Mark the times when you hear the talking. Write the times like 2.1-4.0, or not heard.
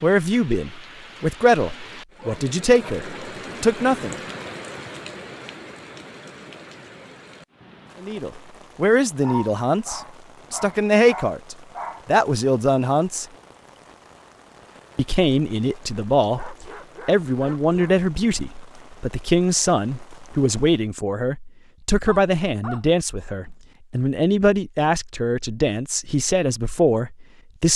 0.0-4.2, 8.0-13.2, 14.9-27.7.